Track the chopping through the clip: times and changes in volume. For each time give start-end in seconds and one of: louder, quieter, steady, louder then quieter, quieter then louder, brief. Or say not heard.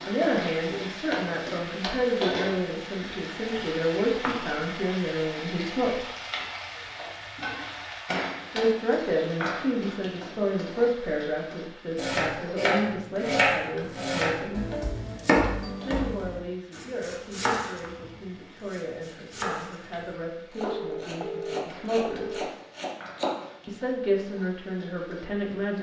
11.9-23.4 quieter.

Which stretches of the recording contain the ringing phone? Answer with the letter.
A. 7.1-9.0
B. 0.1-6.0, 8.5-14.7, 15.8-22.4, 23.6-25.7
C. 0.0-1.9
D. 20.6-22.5
D.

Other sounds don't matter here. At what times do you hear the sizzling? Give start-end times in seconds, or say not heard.
0.0-25.7.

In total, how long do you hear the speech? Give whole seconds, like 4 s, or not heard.
21 s.